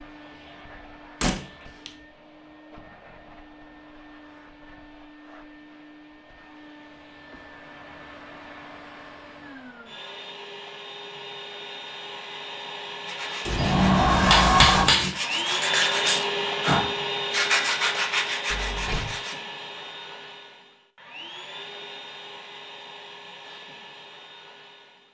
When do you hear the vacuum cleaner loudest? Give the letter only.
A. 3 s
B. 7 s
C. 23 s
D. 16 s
D.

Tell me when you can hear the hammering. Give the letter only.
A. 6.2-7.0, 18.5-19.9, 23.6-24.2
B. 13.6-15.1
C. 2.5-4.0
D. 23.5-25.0
B.